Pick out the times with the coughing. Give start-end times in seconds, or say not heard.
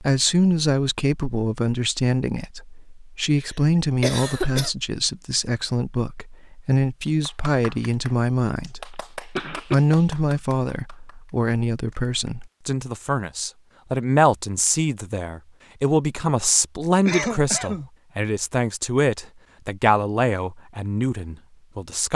4.0-4.7, 8.9-9.8, 17.1-17.9.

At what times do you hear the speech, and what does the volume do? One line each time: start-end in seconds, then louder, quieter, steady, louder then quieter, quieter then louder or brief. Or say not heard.
0.0-22.1 steady.